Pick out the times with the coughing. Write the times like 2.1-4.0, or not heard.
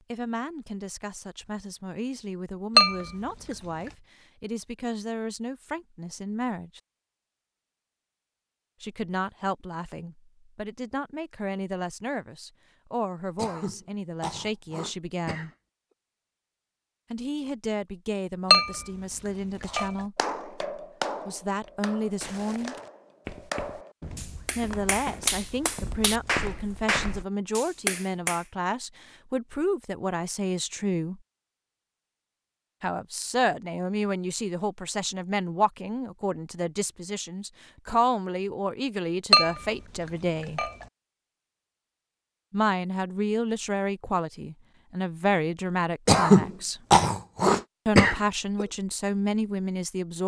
13.3-15.5, 46.0-48.6.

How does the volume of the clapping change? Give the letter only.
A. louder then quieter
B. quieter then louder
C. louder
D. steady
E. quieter
B.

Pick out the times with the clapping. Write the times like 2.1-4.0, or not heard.
19.6-28.4.